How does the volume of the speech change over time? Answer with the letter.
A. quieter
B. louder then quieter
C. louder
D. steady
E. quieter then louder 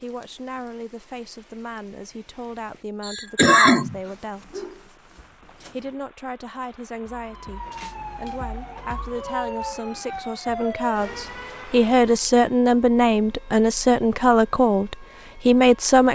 C.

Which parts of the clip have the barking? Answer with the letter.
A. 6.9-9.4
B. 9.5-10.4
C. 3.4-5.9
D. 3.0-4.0
C.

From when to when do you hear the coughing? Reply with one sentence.
The coughing can be heard from 3.0 to 4.0 s.